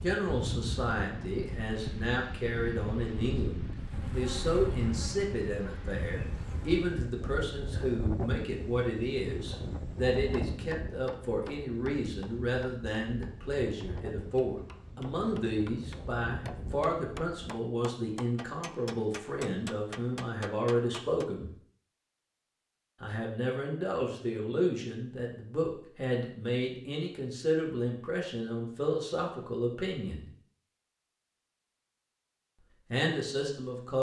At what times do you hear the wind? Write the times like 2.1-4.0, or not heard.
0.0-17.6.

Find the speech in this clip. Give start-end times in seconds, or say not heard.
0.0-21.5, 23.0-30.3, 32.9-33.9.